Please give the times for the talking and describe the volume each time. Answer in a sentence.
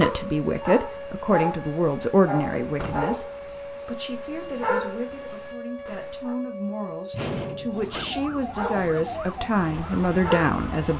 The talking can be heard from 0.0 to 10.9 s, getting quieter then louder.